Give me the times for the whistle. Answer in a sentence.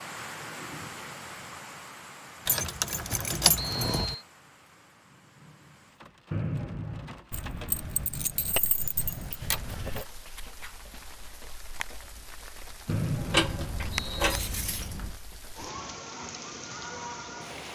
The whistle can be heard from 3.5 to 4.2 s, from 6.3 to 7.2 s and from 12.8 to 14.5 s.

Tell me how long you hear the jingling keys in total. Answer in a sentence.
You can hear the jingling keys for 6 seconds altogether.